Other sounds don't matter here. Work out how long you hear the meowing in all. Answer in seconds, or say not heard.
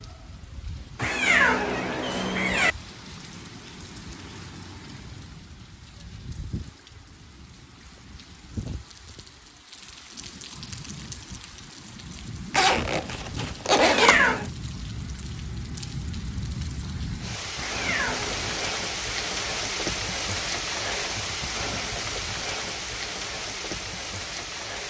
4 s.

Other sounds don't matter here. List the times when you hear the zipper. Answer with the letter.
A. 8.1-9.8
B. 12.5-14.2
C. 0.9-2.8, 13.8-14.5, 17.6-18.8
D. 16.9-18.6
B.